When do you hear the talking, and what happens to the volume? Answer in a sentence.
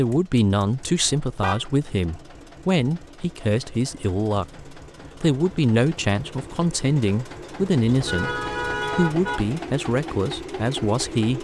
You can hear the talking from 0.0 to 11.3 s, at a steady volume.